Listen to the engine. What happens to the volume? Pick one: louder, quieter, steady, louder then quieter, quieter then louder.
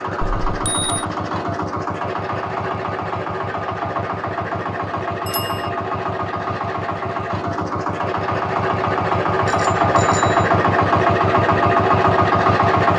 louder.